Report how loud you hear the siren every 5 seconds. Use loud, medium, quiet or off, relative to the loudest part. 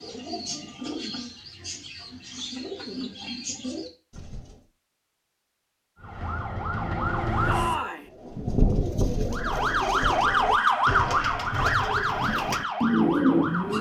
off, loud, loud.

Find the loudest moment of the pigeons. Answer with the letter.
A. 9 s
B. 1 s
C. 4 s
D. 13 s
D.